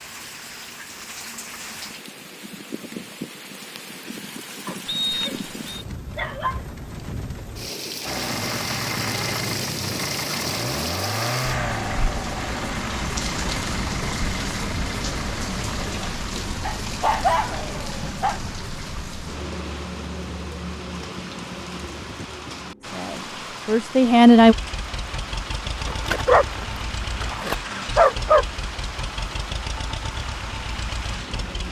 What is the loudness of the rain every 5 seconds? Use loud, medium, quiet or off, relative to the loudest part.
medium, loud, loud, loud, medium, medium, medium.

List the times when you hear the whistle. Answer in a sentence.
The whistle can be heard from 4.8 to 5.8 s.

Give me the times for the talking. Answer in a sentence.
The talking can be heard from 22.8 to 24.6 s.